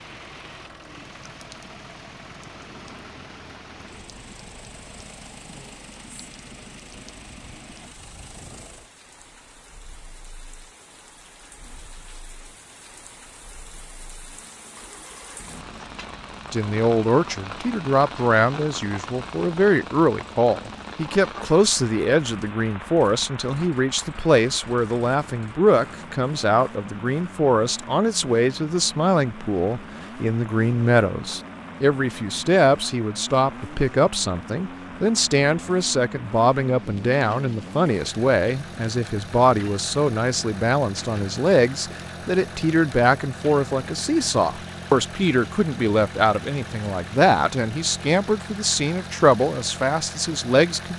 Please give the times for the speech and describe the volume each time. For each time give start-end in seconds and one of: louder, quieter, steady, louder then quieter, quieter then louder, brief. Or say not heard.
16.5-50.9 steady.